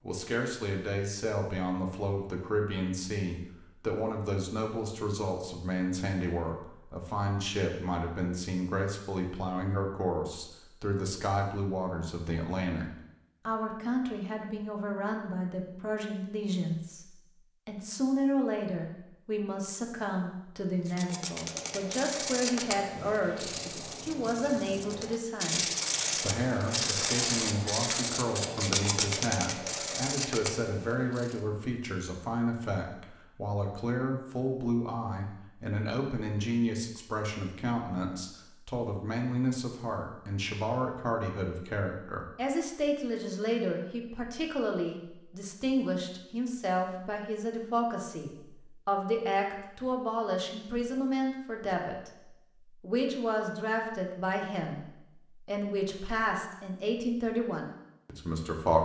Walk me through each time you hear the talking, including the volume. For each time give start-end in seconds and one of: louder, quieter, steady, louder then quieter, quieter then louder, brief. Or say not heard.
0.0-12.8 steady
13.4-58.7 steady.